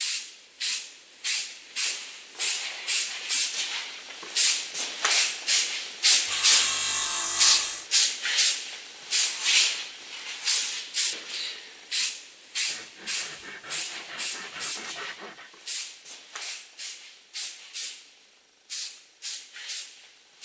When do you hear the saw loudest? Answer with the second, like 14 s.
7 s.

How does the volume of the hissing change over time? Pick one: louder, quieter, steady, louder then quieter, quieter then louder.
louder then quieter.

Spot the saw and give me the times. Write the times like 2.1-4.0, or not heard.
6.3-7.9, 12.7-15.5.